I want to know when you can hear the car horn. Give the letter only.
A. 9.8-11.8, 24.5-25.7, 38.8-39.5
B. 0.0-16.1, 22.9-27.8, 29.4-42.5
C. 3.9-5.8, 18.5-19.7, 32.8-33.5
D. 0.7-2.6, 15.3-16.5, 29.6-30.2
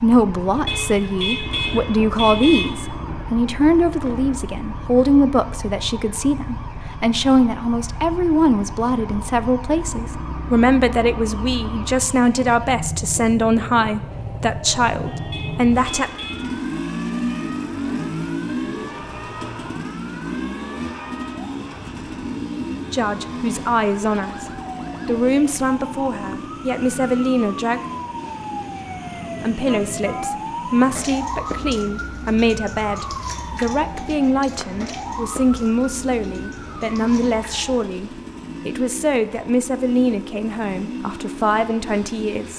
D.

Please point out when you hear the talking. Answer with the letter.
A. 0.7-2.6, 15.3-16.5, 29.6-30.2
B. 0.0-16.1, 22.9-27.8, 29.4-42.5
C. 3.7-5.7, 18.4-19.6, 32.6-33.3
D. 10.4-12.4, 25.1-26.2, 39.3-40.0
B.